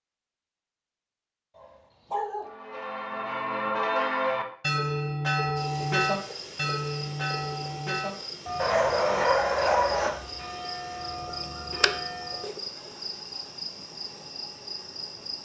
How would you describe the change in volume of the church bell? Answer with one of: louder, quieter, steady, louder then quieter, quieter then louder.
quieter.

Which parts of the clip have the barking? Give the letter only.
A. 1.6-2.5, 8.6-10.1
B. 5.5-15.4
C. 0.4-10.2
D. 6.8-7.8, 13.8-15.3
A.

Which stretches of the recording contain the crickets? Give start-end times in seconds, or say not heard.
5.5-15.4.